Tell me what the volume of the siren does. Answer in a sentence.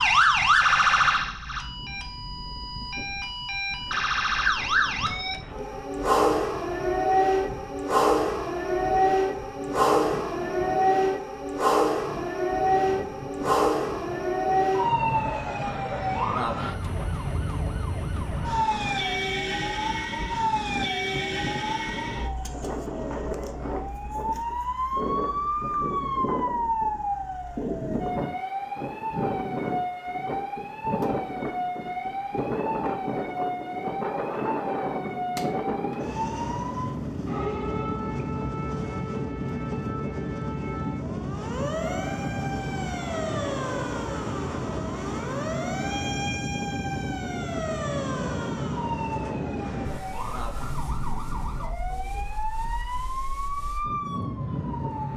The loudness of the siren goes down.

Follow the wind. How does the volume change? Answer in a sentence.
The volume of the wind goes up.